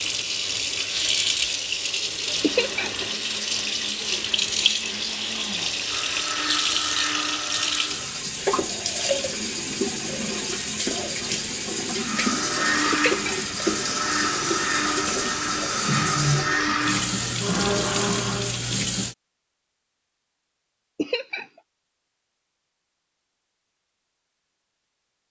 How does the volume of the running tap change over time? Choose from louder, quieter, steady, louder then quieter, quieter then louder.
steady.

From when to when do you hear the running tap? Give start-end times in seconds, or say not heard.
0.0-19.1.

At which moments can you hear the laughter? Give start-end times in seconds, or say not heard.
2.4-2.9, 12.9-13.3, 20.9-21.4.